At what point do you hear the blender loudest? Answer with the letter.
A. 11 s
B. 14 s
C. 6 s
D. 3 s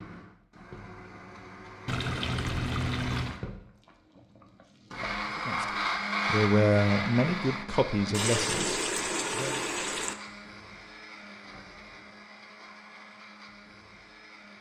C.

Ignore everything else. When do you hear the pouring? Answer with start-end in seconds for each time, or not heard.
1.9-3.4, 8.1-10.2.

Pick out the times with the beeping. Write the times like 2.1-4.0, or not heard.
not heard.